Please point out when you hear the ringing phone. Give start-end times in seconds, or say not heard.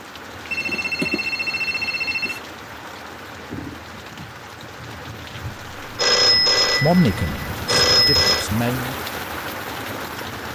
0.5-2.4, 6.0-8.4.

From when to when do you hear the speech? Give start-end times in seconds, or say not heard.
6.7-8.9.